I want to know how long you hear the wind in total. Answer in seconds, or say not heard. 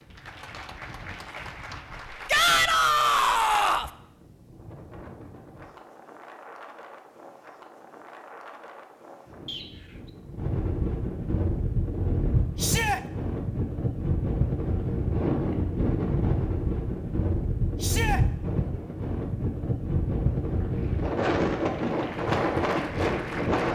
24 s.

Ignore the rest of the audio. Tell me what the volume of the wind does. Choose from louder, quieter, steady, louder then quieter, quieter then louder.
louder.